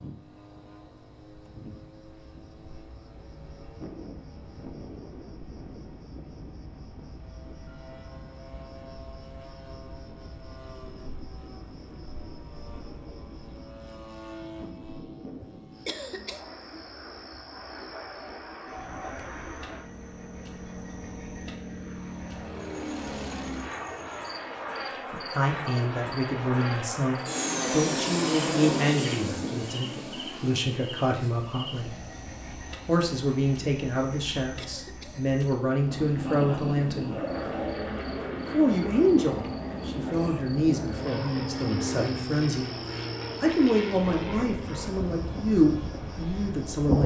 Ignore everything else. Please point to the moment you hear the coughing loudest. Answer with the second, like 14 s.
16 s.